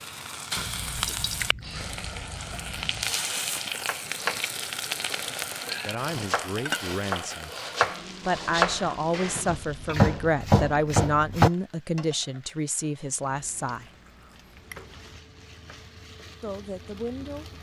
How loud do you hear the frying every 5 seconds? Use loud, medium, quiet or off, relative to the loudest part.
loud, loud, quiet, quiet.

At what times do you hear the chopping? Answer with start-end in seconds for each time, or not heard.
3.6-11.5.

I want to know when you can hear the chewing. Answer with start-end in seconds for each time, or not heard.
0.6-3.1, 13.2-15.2.